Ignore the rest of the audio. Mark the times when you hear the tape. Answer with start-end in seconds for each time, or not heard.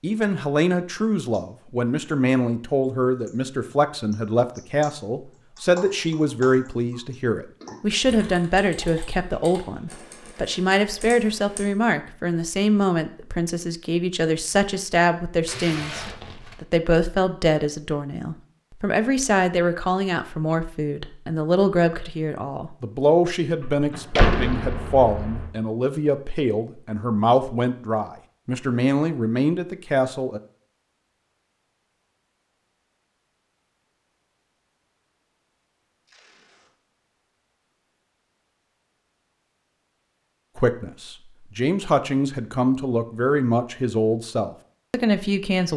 9.3-10.4, 15.4-16.6, 36.0-36.7.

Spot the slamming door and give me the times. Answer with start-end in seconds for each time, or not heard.
23.6-25.5.